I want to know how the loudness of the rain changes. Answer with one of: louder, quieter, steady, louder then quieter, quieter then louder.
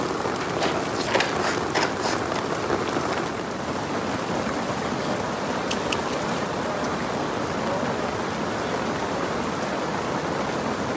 steady.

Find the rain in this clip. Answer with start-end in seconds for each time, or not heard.
0.0-10.9.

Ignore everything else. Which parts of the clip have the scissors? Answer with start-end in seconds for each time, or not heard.
0.4-2.4, 5.7-6.3.